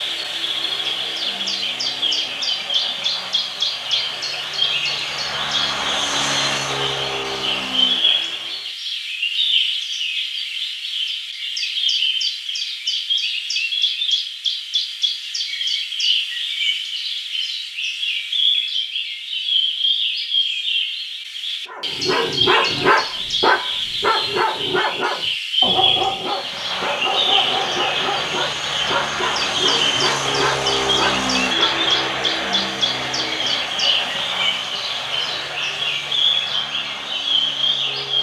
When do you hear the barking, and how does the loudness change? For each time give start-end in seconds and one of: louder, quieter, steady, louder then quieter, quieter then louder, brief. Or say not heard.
21.6-31.8 quieter.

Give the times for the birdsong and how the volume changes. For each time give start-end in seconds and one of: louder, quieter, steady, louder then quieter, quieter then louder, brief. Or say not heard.
0.0-38.1 steady.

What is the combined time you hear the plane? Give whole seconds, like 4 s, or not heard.
21 s.